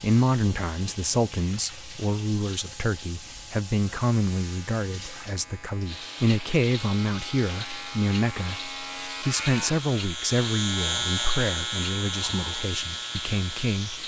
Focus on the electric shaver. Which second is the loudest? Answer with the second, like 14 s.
11 s.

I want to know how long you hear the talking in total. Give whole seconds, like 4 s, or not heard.
14 s.